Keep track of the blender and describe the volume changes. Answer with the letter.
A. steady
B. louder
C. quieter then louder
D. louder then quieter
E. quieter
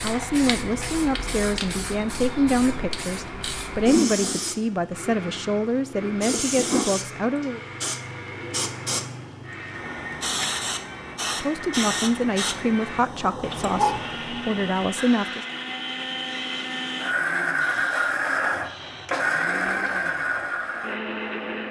B.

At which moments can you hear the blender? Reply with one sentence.
The blender can be heard from 0.1 to 21.6 s.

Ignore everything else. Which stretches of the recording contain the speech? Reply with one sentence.
You can hear the speech from 0.0 to 7.6 s and from 11.4 to 15.4 s.